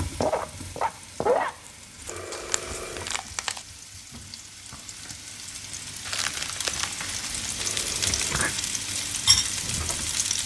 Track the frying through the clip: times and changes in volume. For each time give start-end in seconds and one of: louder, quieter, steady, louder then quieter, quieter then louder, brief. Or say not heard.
0.0-10.4 quieter then louder.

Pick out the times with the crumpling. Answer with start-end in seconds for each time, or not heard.
1.6-3.6, 6.0-7.9.